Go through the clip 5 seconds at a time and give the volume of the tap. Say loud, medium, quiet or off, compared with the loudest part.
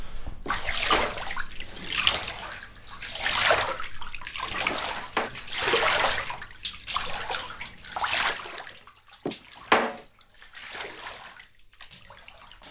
loud, loud, quiet.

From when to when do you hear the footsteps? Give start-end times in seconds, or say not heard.
not heard.